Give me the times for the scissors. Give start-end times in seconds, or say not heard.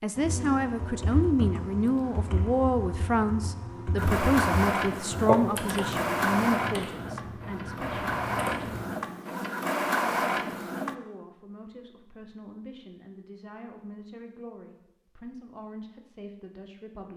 not heard.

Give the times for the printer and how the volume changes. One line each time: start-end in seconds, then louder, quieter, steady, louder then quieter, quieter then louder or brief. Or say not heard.
4.0-10.9 quieter then louder.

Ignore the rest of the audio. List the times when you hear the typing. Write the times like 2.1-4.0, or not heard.
0.1-8.8.